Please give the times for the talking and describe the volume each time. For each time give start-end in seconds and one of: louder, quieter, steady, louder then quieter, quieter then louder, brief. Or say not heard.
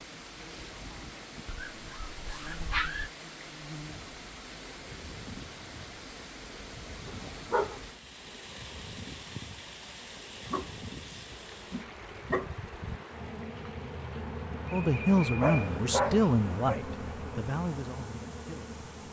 14.7-18.8 quieter.